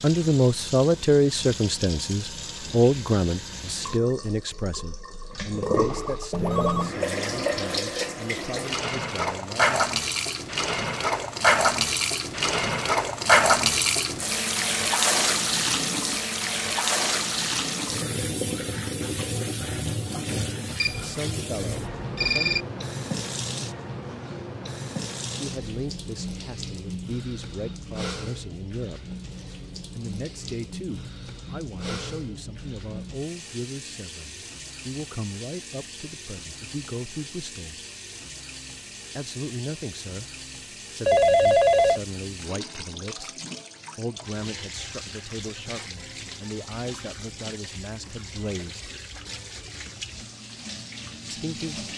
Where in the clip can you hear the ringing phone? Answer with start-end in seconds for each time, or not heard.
6.3-7.0, 20.8-22.6, 41.0-42.0.